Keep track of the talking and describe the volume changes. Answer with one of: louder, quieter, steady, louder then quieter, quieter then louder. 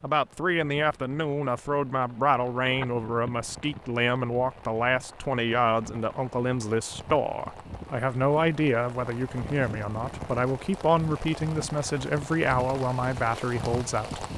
steady.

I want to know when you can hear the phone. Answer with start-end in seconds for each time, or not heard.
2.6-3.8.